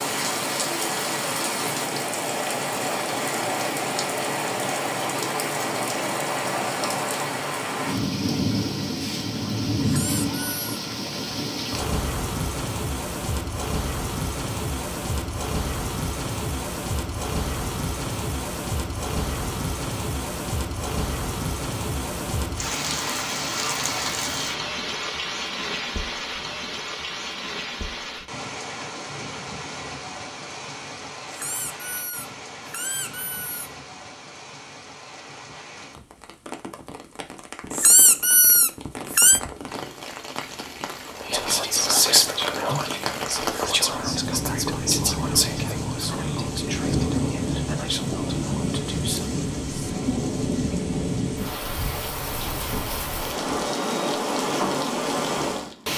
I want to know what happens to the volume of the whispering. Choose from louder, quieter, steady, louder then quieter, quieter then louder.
quieter.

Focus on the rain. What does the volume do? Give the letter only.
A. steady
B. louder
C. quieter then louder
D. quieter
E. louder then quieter
C.